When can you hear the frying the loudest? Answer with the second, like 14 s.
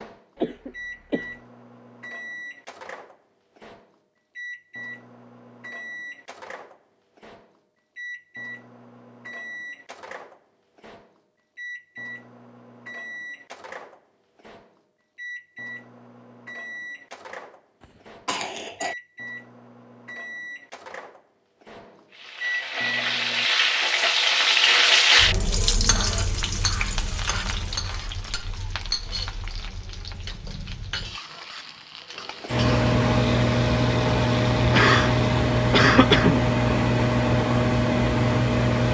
25 s.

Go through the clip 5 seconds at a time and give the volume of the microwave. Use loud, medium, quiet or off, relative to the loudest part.
quiet, quiet, quiet, quiet, quiet, off, loud, loud.